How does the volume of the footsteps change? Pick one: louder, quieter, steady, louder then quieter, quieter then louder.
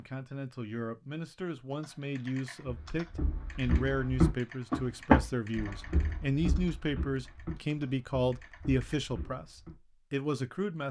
louder then quieter.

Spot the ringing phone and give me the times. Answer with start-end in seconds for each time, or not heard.
not heard.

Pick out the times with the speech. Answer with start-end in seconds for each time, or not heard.
0.0-10.8.